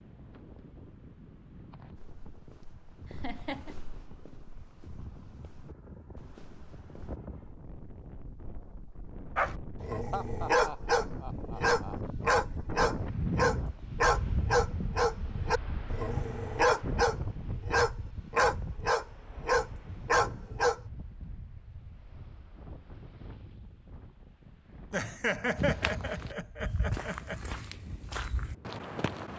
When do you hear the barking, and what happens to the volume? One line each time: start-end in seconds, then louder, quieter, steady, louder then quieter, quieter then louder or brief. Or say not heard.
9.3-20.8 steady.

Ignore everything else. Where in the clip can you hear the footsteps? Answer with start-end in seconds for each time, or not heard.
1.9-7.2, 25.6-29.3.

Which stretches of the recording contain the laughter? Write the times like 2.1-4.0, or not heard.
3.0-3.8, 10.1-11.9, 24.9-27.4.